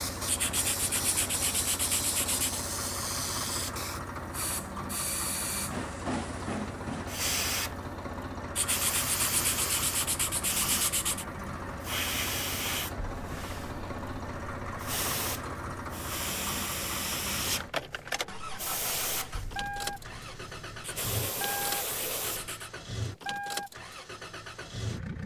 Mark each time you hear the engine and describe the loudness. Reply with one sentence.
The engine can be heard from 0.0 to 25.2 s, at a steady volume.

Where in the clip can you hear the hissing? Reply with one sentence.
You can hear the hissing from 0.0 to 22.6 s.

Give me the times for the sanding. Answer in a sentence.
You can hear the sanding from 0.2 to 2.6 s, from 8.6 to 11.2 s and from 20.8 to 22.7 s.